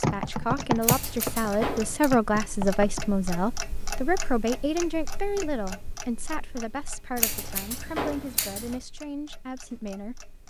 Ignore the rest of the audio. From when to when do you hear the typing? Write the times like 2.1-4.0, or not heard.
0.0-3.1.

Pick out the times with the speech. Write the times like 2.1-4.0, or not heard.
0.0-10.2.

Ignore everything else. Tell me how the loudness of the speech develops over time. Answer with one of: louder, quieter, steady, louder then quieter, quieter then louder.
quieter.